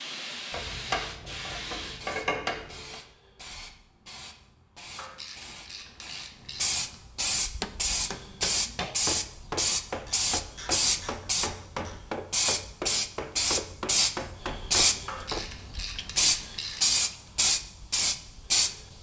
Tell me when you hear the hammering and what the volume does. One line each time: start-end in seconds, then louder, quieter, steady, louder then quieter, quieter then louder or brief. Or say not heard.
7.6-15.4 steady.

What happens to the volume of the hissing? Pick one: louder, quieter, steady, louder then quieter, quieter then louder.
louder.